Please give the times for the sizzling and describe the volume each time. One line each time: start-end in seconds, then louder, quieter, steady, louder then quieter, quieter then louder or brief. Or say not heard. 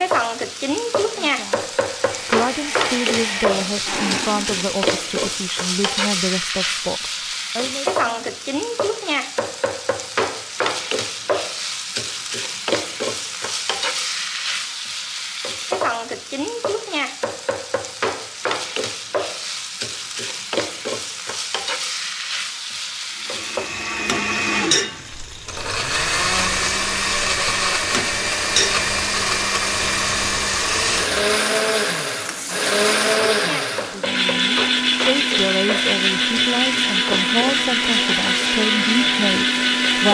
0.0-40.0 quieter.